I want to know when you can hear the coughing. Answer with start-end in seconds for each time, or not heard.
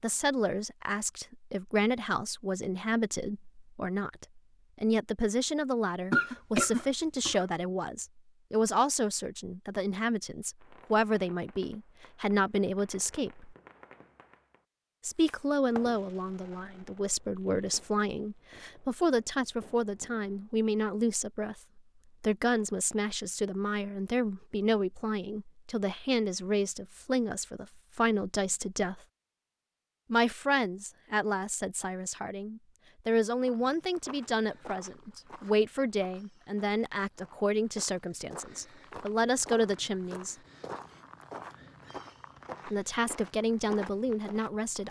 6.1-7.5.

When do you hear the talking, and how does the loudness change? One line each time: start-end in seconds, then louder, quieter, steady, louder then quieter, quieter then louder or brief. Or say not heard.
0.0-13.6 steady
15.0-29.0 steady
30.1-40.4 steady
42.6-44.8 brief.